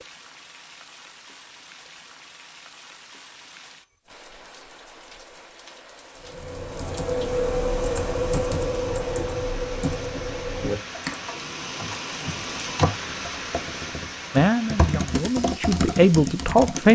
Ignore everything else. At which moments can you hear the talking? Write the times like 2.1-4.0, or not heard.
14.3-16.8.